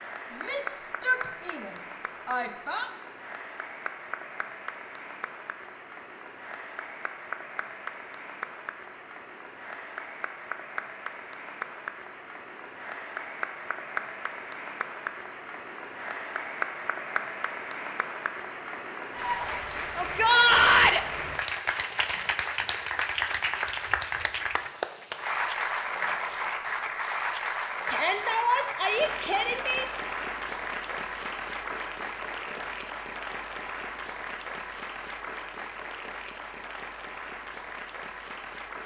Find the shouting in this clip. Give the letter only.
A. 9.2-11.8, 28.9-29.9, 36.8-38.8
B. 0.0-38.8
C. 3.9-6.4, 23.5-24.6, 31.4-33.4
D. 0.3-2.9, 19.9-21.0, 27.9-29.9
D.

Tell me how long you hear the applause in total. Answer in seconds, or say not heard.
39 s.